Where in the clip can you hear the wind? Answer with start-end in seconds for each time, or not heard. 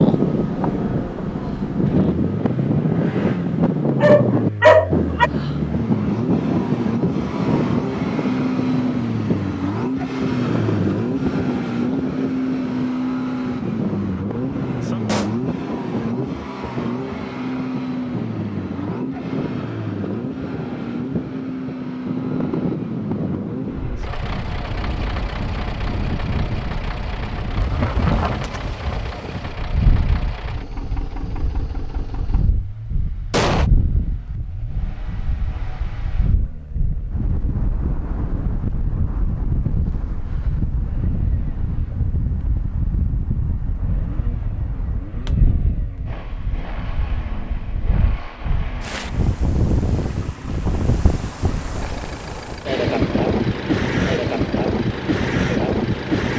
0.0-56.3.